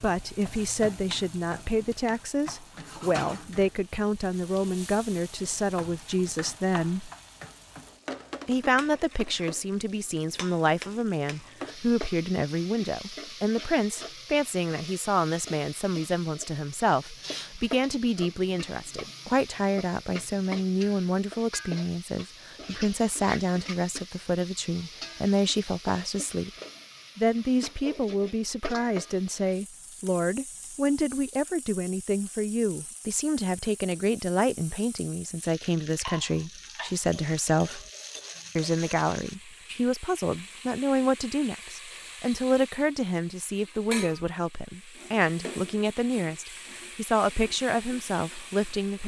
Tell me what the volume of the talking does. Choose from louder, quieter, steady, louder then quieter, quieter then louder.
steady.